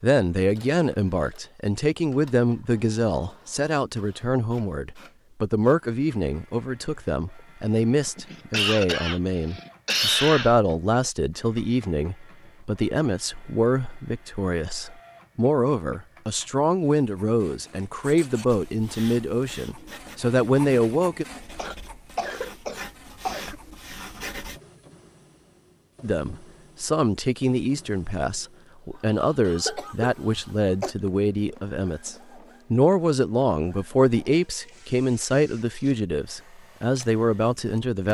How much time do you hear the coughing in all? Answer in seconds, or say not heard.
6 s.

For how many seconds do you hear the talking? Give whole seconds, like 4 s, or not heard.
33 s.